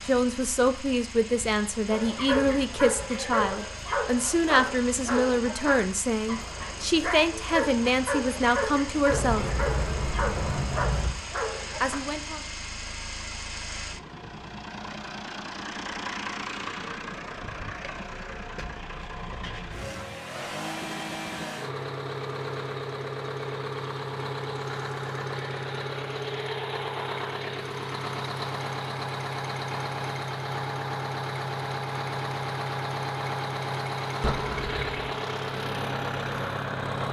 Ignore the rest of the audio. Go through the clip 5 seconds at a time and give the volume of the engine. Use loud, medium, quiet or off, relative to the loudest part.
medium, medium, medium, medium, loud, loud, loud, loud.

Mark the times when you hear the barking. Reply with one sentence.
You can hear the barking from 1.9 to 12.0 s.